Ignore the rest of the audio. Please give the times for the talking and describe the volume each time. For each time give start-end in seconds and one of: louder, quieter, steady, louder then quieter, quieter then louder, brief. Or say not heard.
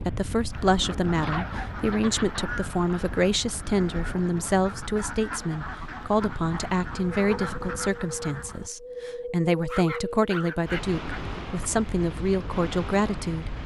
0.1-13.6 steady.